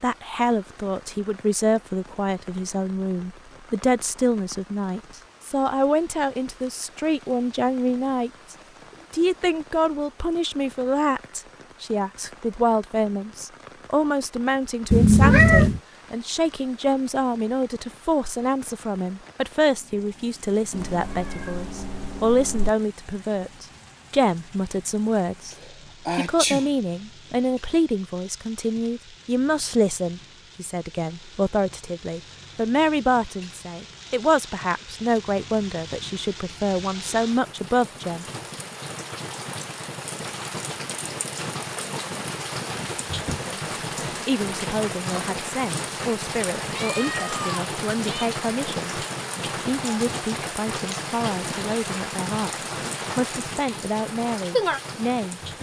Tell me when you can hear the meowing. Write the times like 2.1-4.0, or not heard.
14.9-15.8, 20.7-22.7, 46.6-48.3.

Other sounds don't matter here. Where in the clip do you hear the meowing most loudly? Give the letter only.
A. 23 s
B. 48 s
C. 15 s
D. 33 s
C.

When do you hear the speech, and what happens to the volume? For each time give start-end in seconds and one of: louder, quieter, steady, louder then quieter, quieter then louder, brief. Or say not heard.
0.0-38.2 steady
43.2-55.4 steady.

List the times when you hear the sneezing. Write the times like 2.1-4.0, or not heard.
25.6-26.6.